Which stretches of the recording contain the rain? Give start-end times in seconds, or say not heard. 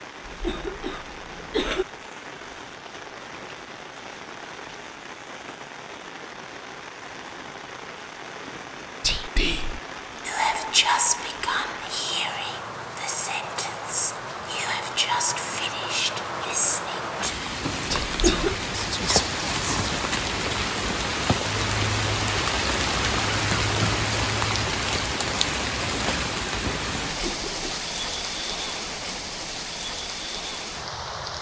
0.0-31.3.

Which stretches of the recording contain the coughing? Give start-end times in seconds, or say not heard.
0.2-1.9, 18.0-18.6, 27.1-27.9.